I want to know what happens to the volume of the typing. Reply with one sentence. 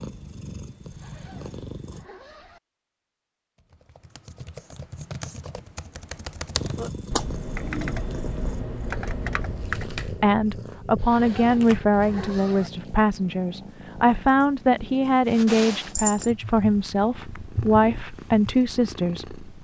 The volume of the typing goes up.